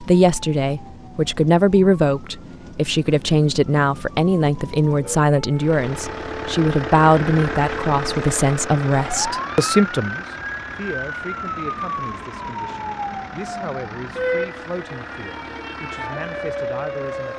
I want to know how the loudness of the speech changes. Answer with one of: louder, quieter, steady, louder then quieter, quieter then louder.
quieter.